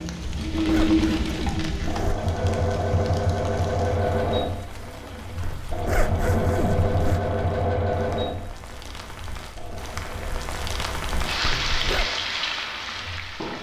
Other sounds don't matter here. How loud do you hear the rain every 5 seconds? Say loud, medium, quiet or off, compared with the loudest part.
quiet, quiet, loud.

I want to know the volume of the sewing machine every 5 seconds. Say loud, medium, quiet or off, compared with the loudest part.
loud, loud, quiet.